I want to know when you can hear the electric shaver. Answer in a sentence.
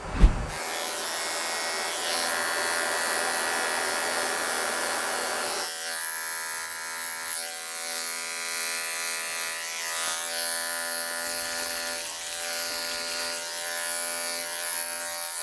The electric shaver can be heard from 0.0 to 15.3 s.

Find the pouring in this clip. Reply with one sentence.
You can hear the pouring from 11.2 to 13.3 s.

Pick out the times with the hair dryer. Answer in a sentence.
You can hear the hair dryer from 0.0 to 5.7 s.